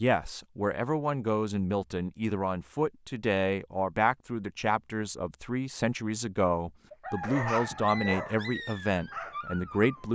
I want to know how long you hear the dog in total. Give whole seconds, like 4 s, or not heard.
3 s.